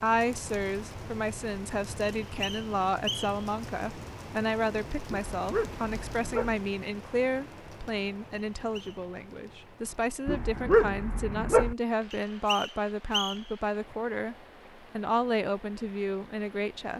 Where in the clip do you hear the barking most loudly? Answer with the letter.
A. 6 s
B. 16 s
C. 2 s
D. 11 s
D.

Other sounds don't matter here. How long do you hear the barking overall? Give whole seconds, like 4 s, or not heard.
3 s.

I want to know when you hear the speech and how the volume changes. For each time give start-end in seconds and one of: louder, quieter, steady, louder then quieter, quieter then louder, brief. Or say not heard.
0.0-14.3 steady
14.9-16.9 brief.